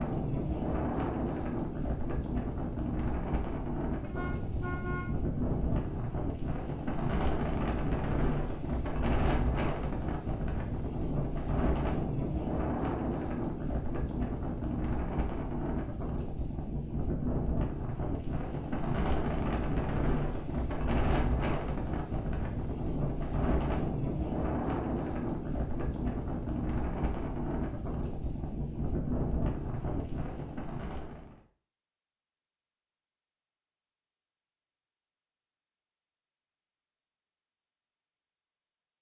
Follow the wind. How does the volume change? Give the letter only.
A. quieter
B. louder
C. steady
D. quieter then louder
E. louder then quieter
C.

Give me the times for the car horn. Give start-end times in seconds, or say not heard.
4.0-6.0.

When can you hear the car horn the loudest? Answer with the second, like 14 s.
5 s.